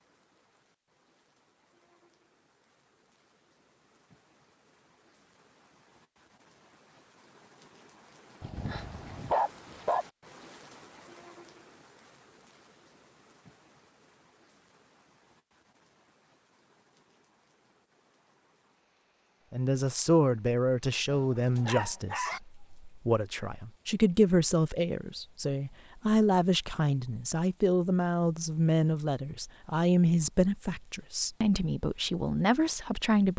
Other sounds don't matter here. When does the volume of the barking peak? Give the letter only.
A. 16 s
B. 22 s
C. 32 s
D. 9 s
D.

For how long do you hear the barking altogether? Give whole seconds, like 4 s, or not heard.
3 s.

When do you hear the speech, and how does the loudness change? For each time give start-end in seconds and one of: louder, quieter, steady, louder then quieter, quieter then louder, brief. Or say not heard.
19.5-33.3 steady.